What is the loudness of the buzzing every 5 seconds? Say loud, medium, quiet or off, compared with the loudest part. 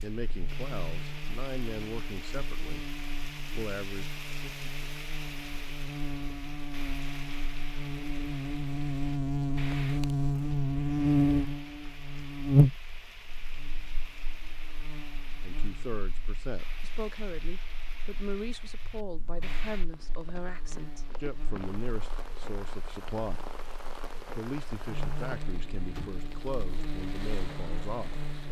quiet, medium, loud, quiet, quiet, quiet.